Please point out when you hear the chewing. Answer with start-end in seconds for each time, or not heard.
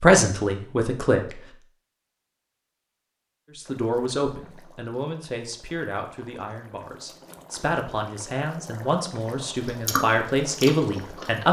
9.7-11.3.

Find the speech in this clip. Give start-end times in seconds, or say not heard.
0.0-1.4, 3.5-11.4.